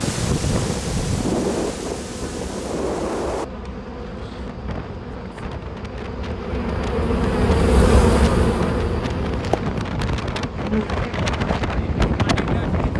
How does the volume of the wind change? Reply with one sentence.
The volume of the wind goes down, then up.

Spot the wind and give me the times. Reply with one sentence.
The wind can be heard from 0.0 to 12.9 s.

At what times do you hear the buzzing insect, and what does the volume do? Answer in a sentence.
The buzzing insect can be heard from 0.1 to 12.9 s, getting louder then quieter.